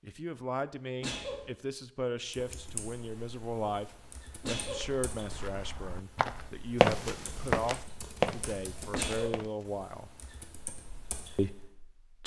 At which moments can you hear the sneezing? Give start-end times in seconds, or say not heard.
1.0-1.5, 4.4-4.9, 8.9-9.4.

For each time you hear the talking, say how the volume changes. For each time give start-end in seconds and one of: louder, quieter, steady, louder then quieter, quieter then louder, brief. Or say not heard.
0.0-10.1 steady
11.3-12.2 brief.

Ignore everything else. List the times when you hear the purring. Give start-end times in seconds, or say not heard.
not heard.